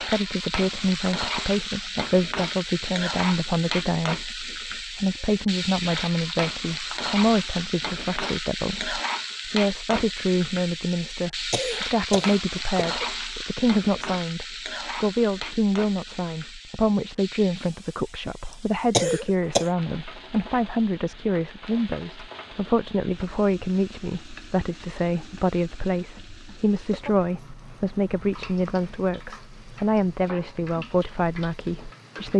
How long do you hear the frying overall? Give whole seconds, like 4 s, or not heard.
32 s.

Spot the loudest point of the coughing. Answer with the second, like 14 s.
19 s.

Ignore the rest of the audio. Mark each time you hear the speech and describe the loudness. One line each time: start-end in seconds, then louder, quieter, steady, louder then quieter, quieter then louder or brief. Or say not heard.
0.0-32.3 steady.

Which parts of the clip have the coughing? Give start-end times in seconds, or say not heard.
11.1-13.1, 18.5-19.7.